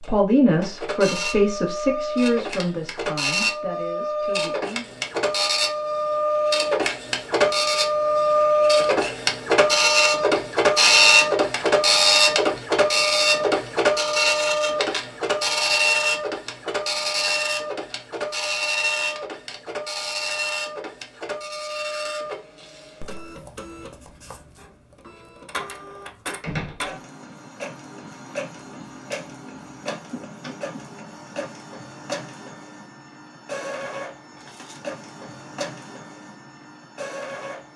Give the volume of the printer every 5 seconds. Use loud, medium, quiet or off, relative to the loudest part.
medium, loud, loud, medium, quiet, quiet, quiet, quiet.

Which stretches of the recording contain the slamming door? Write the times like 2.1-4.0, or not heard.
26.4-26.9.